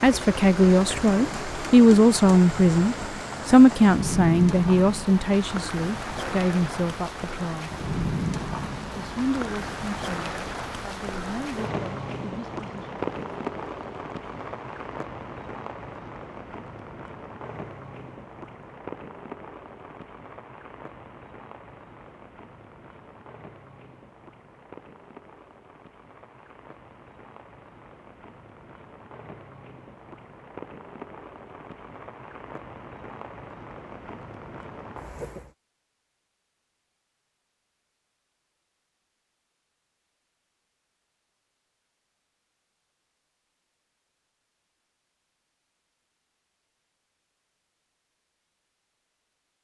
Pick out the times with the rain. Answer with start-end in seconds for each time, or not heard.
0.0-35.5.